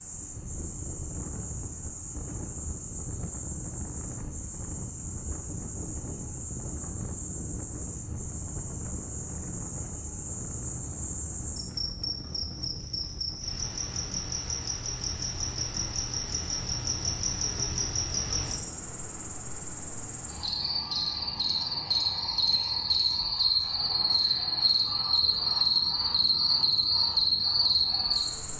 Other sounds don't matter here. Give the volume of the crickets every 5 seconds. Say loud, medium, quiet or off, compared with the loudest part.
quiet, quiet, medium, medium, loud, loud.